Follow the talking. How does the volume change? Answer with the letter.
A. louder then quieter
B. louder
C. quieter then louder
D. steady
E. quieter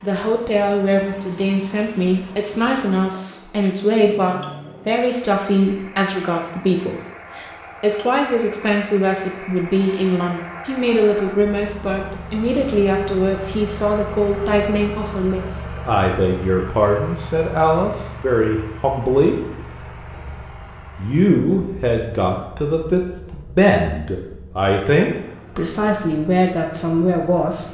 D.